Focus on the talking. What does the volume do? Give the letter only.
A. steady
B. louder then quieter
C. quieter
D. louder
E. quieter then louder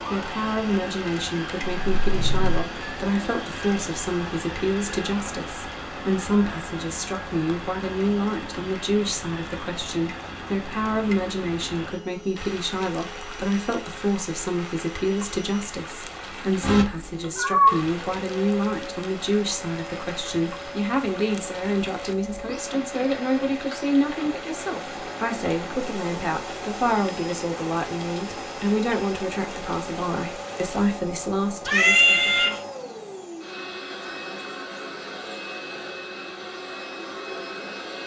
A.